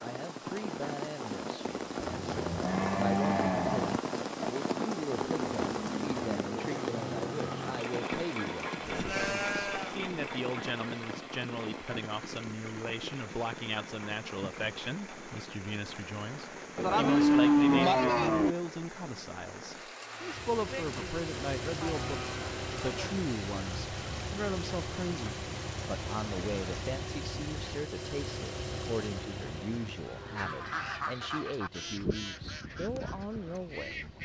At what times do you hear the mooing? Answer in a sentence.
The mooing can be heard from 2.0 to 4.0 s, from 8.8 to 9.9 s, from 16.8 to 18.6 s, from 20.6 to 23.1 s and from 29.4 to 31.1 s.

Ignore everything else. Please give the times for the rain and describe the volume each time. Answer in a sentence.
The rain can be heard from 0.0 to 26.8 s, getting quieter.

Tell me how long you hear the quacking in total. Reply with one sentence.
You can hear the quacking for 4 seconds altogether.